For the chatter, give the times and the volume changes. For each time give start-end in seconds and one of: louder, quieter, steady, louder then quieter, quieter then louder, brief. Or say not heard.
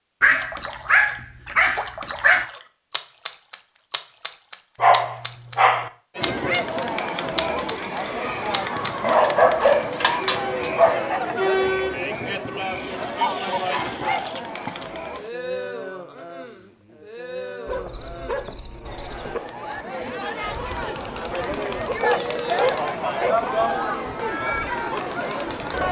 6.2-25.8 quieter then louder.